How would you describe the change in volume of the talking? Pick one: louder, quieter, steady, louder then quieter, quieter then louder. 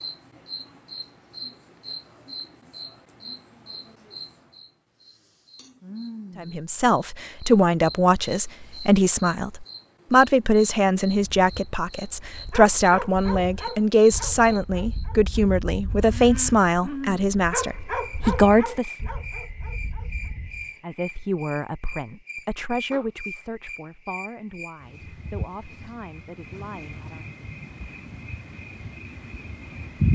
quieter.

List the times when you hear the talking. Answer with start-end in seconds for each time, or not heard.
6.3-18.9, 20.8-27.2.